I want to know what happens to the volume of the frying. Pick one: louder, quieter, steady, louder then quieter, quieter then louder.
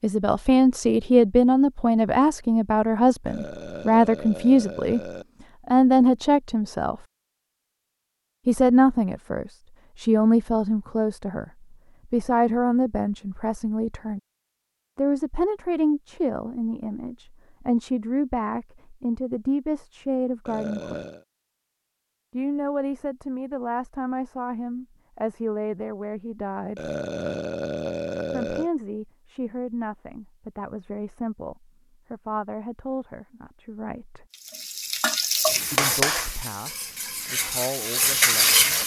quieter then louder.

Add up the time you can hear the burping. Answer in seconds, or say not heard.
5 s.